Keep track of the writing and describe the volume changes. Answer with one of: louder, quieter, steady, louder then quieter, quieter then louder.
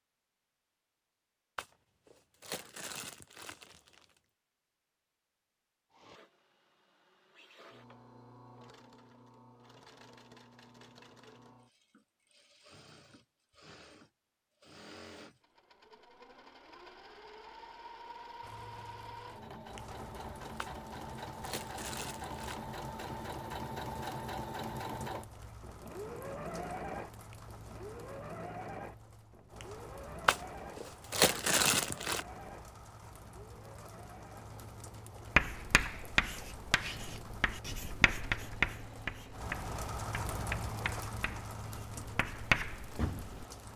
quieter then louder.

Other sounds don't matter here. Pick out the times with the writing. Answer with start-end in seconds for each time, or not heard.
35.4-43.5.